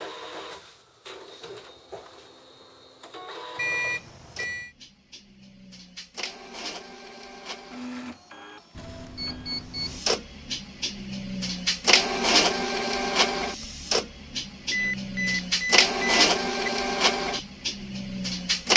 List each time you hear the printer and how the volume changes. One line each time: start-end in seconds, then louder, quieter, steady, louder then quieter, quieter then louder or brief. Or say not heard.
0.0-18.7 louder.